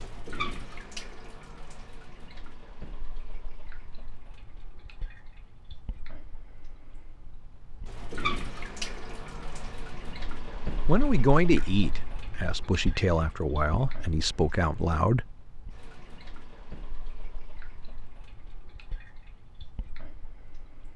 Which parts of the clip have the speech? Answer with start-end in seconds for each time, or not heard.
10.8-15.2.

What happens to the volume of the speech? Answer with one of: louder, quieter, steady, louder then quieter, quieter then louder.
quieter then louder.